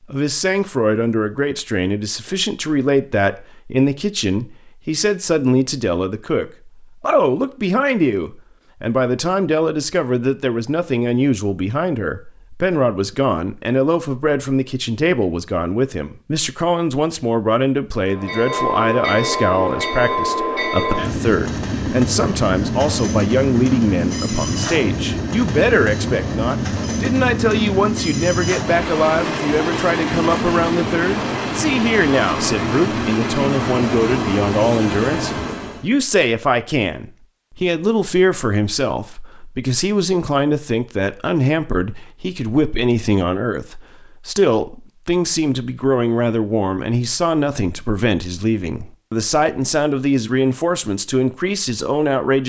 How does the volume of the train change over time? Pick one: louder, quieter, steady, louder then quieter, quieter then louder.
steady.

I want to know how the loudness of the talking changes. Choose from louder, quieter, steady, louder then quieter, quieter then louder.
steady.